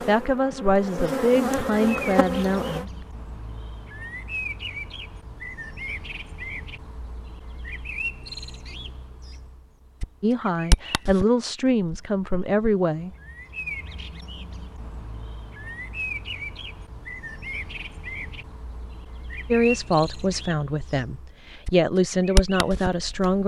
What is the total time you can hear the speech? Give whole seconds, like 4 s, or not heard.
10 s.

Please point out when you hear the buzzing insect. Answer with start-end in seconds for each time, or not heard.
0.0-2.9.